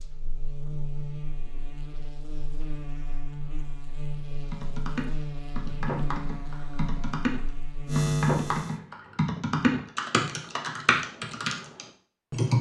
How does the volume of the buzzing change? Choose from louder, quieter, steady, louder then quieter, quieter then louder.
louder.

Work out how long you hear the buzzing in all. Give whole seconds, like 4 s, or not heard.
9 s.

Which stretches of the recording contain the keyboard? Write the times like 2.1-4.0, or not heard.
4.5-12.5.